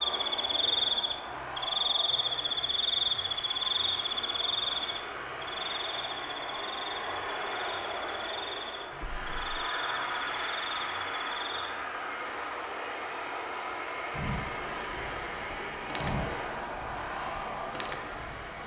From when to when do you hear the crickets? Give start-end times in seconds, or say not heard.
0.0-18.6.